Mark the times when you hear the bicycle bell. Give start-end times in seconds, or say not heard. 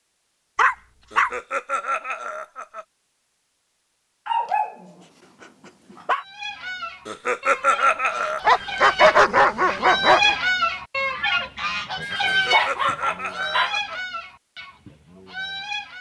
not heard.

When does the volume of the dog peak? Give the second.
9 s.